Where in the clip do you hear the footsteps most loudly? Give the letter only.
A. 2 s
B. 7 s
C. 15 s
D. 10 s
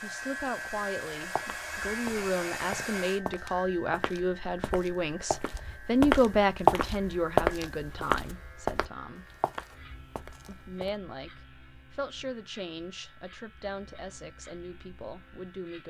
B.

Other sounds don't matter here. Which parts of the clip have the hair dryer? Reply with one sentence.
The hair dryer can be heard from 0.0 to 3.2 s.